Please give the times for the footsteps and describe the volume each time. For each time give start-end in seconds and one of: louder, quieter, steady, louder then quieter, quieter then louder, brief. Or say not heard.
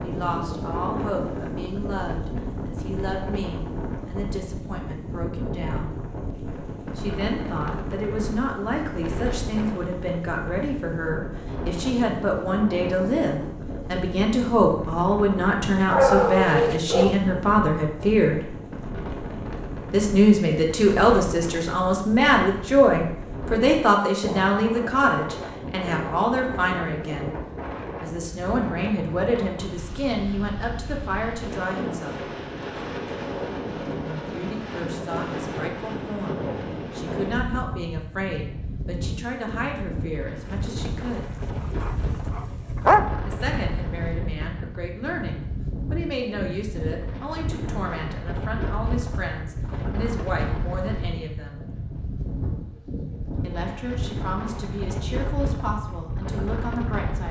not heard.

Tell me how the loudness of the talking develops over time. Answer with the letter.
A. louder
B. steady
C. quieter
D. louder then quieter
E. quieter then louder
D.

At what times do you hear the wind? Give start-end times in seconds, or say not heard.
0.0-57.2.